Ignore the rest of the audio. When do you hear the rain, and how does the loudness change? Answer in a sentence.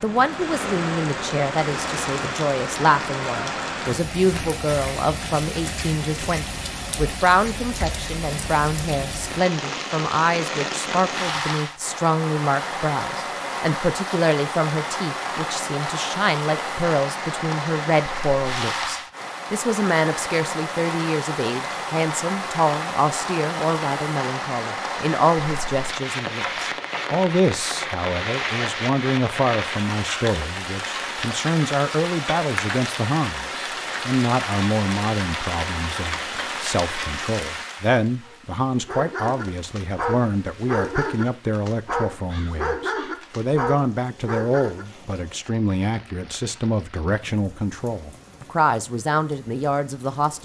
The rain can be heard from 0.0 to 50.4 s, getting quieter.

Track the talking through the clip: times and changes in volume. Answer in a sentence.
The talking can be heard from 0.0 to 50.4 s, at a steady volume.